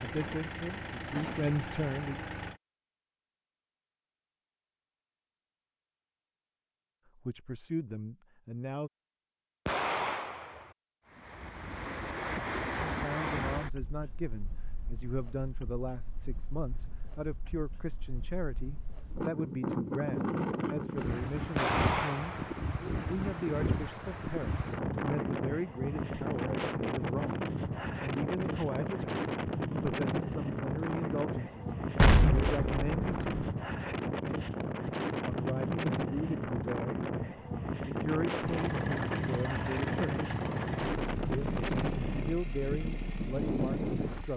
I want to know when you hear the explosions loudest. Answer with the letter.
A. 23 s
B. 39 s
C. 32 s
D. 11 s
C.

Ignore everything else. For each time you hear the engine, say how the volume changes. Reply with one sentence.
You can hear the engine briefly from 0.0 to 2.6 s; and from 38.4 to 44.3 s, getting quieter.